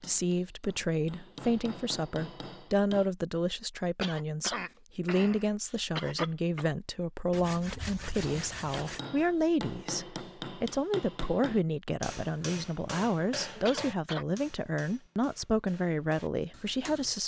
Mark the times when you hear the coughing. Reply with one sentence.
The coughing can be heard from 4.0 to 6.7 s and from 13.7 to 14.2 s.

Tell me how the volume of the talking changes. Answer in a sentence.
The loudness of the talking stays about the same.